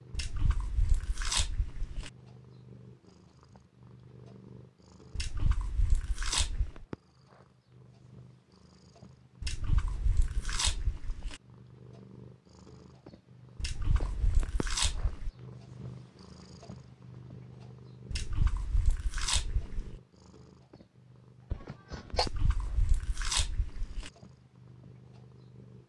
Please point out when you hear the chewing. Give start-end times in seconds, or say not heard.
0.1-2.1, 5.2-6.8, 9.4-11.3, 13.6-15.3, 18.1-20.0, 22.1-24.1.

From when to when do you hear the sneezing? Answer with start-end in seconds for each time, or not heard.
21.5-22.3.